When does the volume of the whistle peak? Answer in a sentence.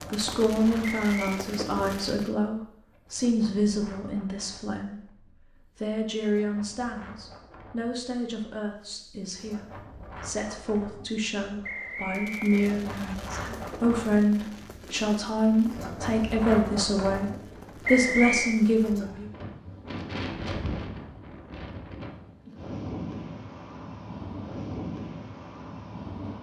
The loudest moment of the whistle is at 18 seconds.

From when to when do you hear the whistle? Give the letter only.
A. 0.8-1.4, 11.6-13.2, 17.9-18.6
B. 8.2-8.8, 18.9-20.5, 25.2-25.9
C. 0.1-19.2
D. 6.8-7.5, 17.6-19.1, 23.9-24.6
A.